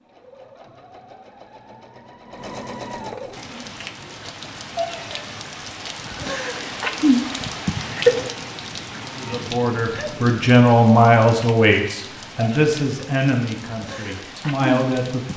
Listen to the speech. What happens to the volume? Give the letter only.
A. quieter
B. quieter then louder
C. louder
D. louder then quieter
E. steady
A.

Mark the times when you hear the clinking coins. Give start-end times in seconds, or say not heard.
not heard.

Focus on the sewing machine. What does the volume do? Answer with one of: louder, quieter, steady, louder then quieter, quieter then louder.
louder then quieter.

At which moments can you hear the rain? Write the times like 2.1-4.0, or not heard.
3.3-15.3.